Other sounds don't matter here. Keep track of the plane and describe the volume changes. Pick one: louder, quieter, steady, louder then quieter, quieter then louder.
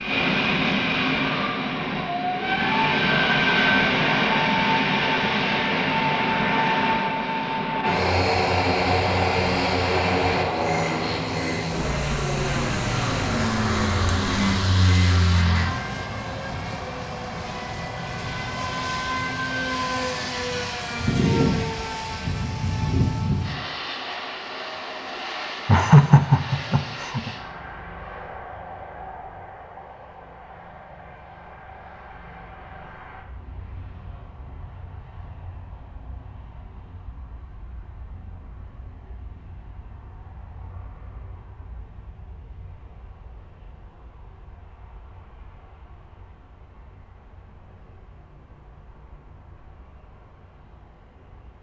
quieter.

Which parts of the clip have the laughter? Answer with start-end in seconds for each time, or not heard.
25.6-27.3.